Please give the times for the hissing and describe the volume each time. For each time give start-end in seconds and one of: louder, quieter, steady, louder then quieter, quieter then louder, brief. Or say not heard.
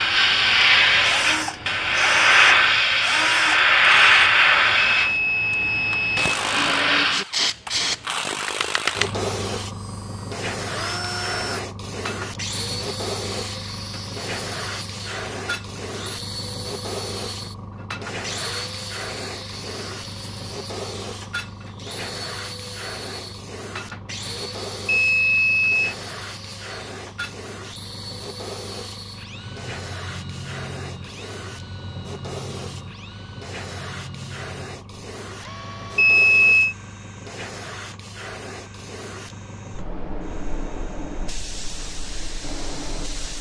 0.0-43.3 quieter.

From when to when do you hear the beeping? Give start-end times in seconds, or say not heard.
5.0-6.2, 24.9-25.9, 36.0-36.8.